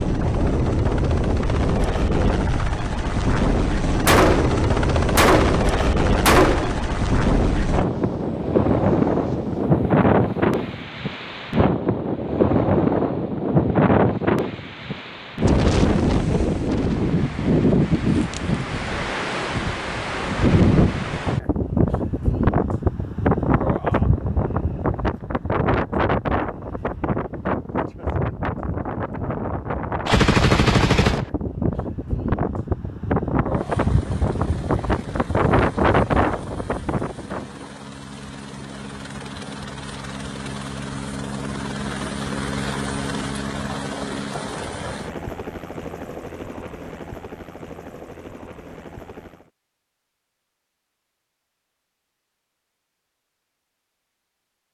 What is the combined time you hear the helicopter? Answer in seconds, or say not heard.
27 s.